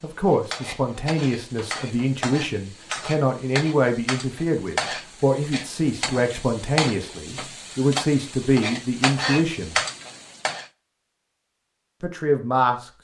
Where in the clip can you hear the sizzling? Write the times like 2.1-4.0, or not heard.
0.0-10.7.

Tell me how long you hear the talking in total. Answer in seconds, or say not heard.
11 s.